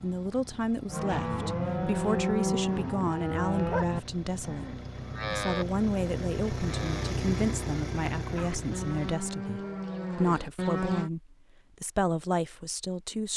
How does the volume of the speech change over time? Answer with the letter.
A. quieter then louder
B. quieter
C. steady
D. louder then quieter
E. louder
C.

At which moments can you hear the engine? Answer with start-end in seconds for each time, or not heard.
0.0-9.2.